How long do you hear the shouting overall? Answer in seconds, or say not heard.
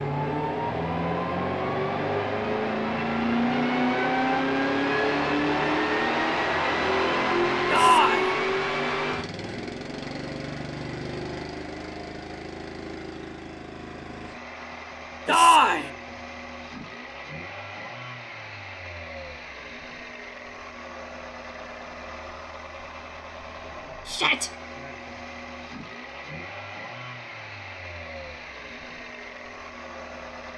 2 s.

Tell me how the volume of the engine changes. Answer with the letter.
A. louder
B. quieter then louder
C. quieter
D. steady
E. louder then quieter
C.